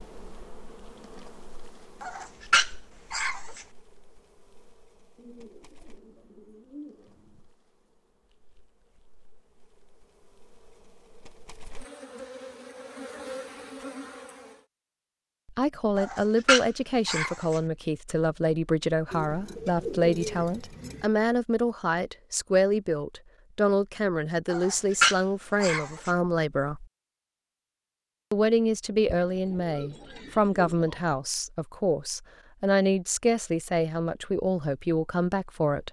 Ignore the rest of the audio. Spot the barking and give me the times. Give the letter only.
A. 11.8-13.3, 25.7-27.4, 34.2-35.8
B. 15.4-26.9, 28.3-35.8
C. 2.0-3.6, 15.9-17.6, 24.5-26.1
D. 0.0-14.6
C.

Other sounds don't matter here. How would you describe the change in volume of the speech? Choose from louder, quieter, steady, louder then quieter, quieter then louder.
steady.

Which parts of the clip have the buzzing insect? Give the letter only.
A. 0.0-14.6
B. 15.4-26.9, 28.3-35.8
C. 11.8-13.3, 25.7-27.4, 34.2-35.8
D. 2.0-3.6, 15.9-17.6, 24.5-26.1
A.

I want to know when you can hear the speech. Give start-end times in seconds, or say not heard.
15.4-26.9, 28.3-35.8.